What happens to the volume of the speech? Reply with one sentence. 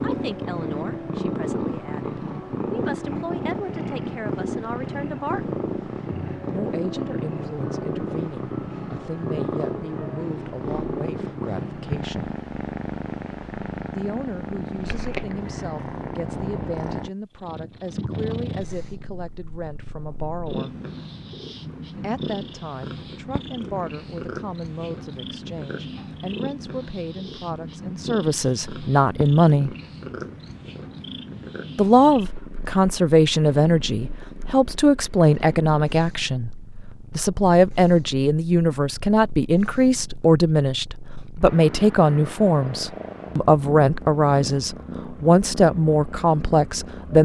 The volume of the speech goes up.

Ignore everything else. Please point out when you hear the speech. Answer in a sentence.
You can hear the speech from 0.0 to 5.6 s, from 6.5 to 12.3 s, from 13.9 to 20.8 s, from 21.9 to 29.8 s and from 31.8 to 47.2 s.